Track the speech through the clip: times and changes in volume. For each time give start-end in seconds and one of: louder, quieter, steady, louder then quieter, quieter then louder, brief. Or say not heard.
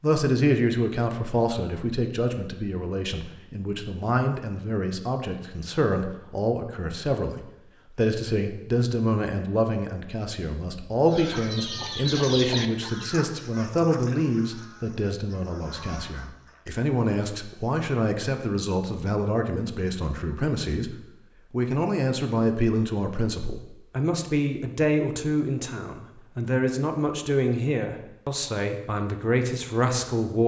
0.0-30.4 steady.